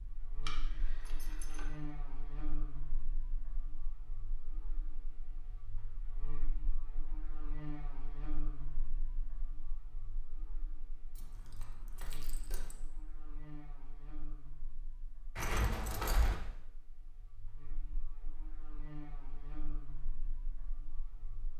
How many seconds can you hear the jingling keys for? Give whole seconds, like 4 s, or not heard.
4 s.